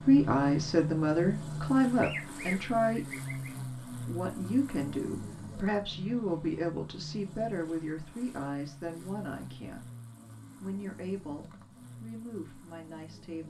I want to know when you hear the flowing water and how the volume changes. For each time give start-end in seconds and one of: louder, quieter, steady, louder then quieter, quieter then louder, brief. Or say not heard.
not heard.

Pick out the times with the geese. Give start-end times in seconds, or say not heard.
2.0-3.5.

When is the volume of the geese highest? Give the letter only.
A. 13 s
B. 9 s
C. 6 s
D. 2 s
D.